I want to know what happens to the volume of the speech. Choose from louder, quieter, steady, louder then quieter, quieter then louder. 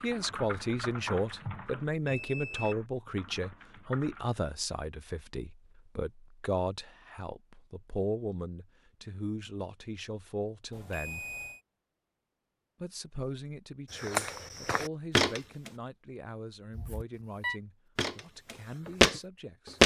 quieter.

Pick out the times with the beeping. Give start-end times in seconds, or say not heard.
2.0-2.8, 10.7-11.6, 16.7-17.6.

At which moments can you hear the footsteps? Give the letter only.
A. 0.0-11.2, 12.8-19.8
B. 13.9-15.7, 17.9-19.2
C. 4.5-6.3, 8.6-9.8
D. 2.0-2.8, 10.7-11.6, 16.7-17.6
B.